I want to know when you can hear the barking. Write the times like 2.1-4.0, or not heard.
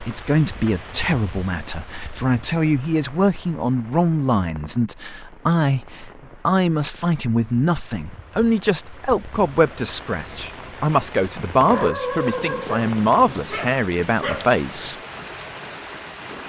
11.7-14.5.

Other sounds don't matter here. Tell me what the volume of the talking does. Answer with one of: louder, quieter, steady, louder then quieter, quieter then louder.
steady.